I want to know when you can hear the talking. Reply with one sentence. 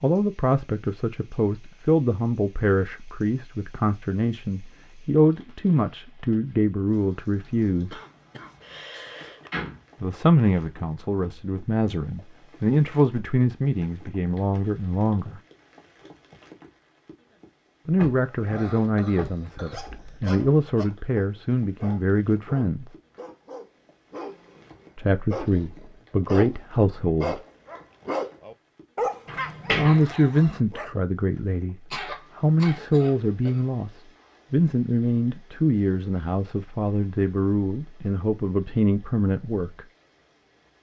You can hear the talking from 0.0 to 8.0 s, from 10.0 to 15.4 s, from 17.9 to 22.9 s, from 24.9 to 27.4 s, from 29.8 to 31.8 s and from 32.4 to 39.9 s.